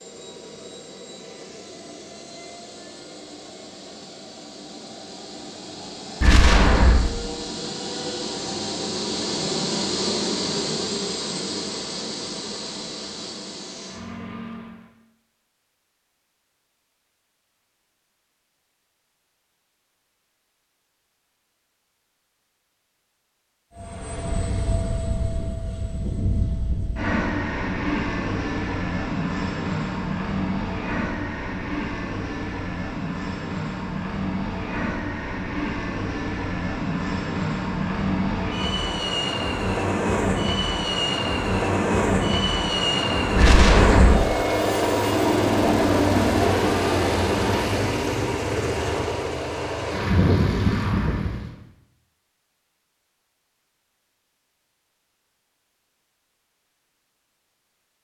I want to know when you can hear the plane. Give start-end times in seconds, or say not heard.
0.0-14.9, 23.8-51.5.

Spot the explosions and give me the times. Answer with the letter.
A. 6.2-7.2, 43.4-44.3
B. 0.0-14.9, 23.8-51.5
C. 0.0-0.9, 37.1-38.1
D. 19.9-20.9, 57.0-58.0
A.